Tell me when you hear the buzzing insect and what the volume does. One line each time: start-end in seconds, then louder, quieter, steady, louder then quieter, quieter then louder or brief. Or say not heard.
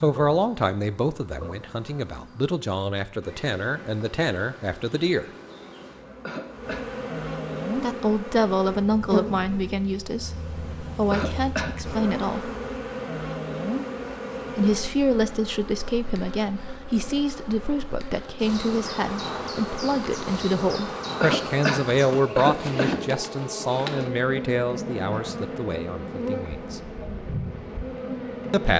0.0-28.7 louder.